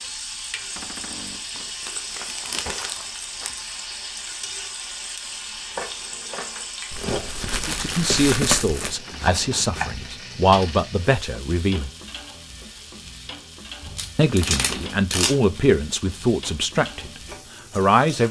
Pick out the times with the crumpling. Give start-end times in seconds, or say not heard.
1.6-3.5, 6.9-8.9, 13.8-15.7.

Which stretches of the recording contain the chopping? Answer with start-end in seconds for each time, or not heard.
5.8-9.9.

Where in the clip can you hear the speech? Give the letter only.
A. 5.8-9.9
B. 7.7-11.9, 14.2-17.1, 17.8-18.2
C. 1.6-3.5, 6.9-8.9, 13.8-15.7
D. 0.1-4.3
B.